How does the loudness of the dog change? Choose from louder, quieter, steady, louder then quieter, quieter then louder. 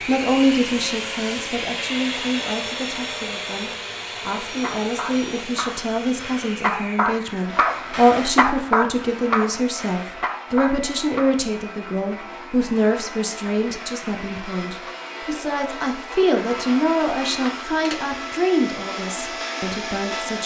louder then quieter.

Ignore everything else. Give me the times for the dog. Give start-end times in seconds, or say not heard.
4.5-11.4.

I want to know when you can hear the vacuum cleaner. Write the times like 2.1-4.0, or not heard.
0.0-20.4.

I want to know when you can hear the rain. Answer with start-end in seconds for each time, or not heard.
not heard.